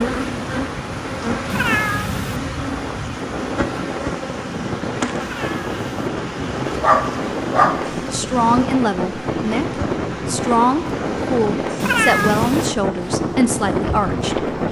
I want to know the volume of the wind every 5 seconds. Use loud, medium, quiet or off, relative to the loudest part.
medium, loud, loud.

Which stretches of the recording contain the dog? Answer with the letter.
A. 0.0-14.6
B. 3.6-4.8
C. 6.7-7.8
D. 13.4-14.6
C.